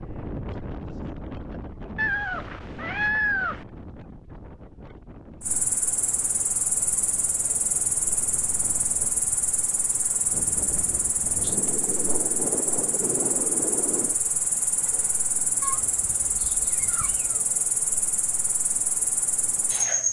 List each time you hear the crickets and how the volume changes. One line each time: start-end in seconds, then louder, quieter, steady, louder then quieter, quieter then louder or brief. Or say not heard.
5.4-20.0 steady.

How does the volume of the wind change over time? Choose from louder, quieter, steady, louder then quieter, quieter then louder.
quieter then louder.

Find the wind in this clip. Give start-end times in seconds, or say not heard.
0.0-14.2.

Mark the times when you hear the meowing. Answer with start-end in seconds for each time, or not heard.
1.9-3.6, 15.6-17.4.